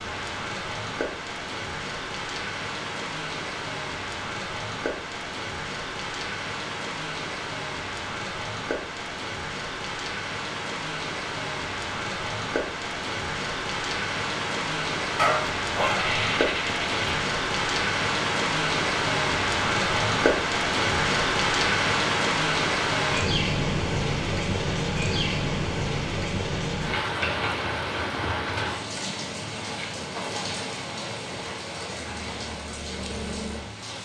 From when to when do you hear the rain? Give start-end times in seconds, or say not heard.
0.0-33.9.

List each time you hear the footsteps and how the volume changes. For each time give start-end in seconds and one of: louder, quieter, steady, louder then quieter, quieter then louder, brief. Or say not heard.
not heard.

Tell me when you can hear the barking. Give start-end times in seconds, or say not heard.
15.2-17.2.